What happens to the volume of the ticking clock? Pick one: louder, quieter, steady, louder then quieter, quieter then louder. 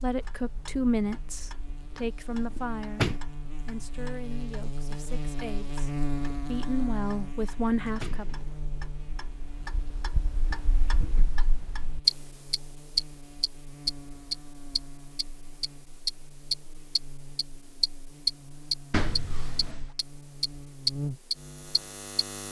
louder.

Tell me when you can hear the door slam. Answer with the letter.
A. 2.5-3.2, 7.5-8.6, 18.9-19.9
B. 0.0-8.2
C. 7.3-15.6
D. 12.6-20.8
A.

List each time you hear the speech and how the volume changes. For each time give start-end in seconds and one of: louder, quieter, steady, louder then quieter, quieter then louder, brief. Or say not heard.
0.0-8.2 quieter then louder.